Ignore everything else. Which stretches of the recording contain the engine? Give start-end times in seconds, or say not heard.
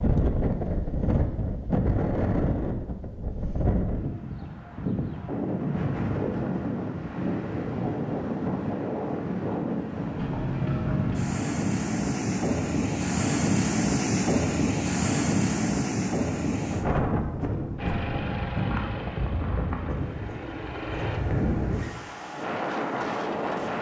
17.8-21.2.